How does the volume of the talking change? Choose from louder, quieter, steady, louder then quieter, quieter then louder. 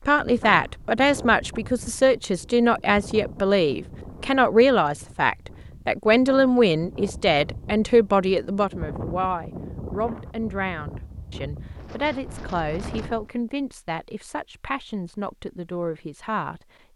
quieter.